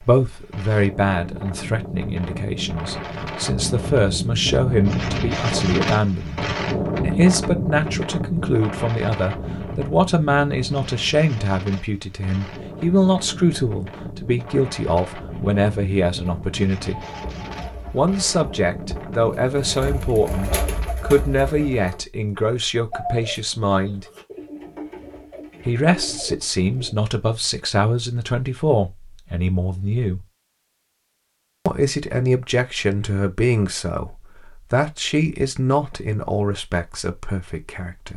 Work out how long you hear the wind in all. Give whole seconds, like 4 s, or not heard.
21 s.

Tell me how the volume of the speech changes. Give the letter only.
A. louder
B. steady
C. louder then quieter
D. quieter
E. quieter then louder
B.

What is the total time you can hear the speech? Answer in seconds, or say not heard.
34 s.